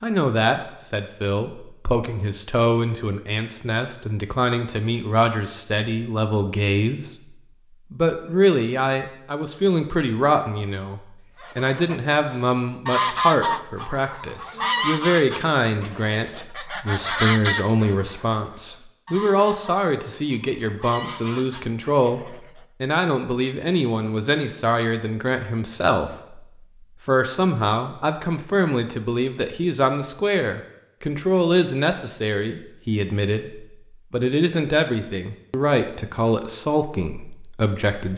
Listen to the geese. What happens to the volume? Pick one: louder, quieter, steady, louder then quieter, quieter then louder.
quieter.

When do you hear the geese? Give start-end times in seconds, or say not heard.
11.4-22.4.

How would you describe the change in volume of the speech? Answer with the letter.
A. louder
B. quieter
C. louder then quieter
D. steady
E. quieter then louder
D.